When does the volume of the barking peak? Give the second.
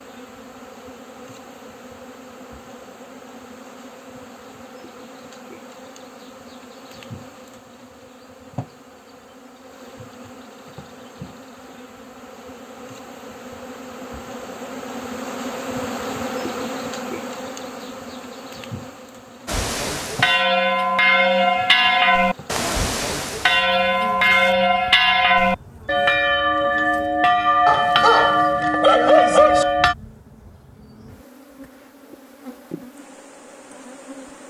29 s.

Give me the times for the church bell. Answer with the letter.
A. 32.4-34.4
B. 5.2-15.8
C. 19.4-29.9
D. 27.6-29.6
C.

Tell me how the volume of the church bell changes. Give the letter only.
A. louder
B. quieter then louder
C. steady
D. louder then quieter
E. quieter
C.